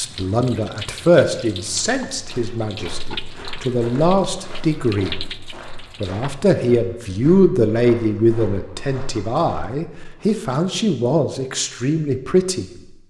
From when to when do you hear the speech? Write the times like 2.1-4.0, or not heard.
0.0-5.1, 6.0-12.7.